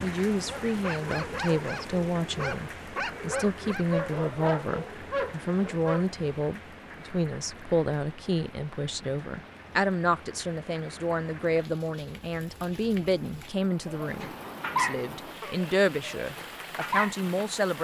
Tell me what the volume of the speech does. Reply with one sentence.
The loudness of the speech stays about the same.